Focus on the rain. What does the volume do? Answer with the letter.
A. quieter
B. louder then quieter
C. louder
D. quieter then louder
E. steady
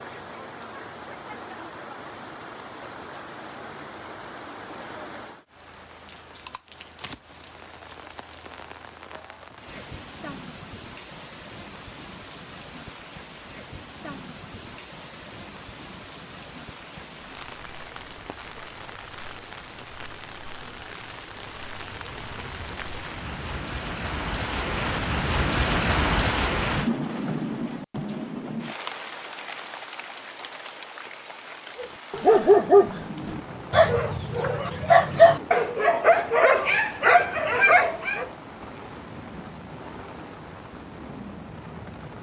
B.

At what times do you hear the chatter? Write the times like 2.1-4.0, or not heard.
not heard.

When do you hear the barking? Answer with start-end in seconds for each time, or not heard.
31.8-38.3.